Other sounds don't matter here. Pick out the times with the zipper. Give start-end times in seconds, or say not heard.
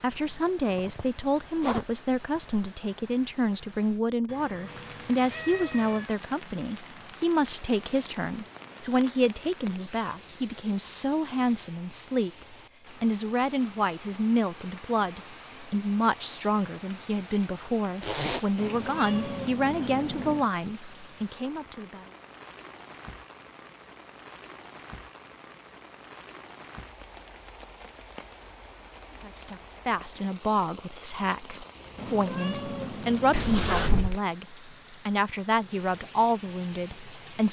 0.1-2.7, 18.0-18.5, 33.3-34.2.